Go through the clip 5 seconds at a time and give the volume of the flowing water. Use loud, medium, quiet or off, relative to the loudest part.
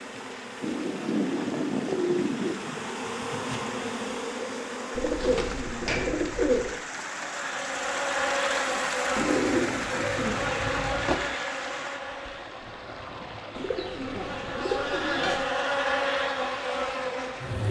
medium, loud, loud, medium.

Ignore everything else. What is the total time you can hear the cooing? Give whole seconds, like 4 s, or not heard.
8 s.